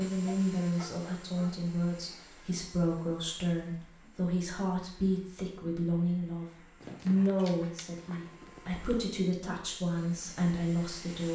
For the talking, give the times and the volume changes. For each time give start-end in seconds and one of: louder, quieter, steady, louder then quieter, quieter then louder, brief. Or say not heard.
0.0-11.3 steady.